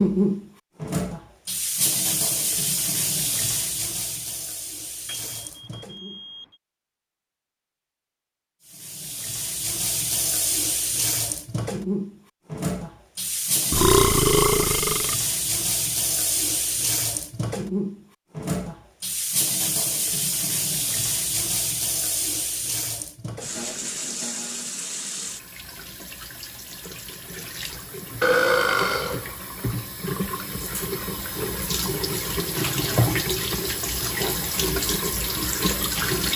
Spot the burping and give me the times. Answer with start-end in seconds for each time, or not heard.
13.7-15.2, 28.2-29.2.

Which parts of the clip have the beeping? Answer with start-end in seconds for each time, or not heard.
5.0-6.6.